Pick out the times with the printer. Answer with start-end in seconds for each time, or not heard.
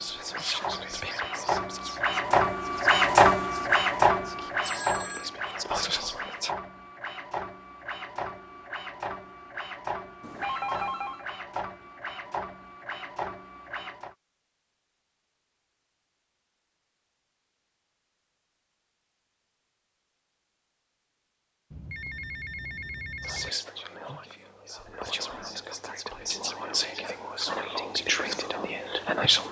0.0-14.2.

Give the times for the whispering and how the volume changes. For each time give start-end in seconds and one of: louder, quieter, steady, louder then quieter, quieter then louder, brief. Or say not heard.
0.0-6.5 quieter then louder
23.2-29.4 louder.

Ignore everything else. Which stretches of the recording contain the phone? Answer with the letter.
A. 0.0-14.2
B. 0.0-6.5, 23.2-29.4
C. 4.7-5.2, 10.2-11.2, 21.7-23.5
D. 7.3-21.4
C.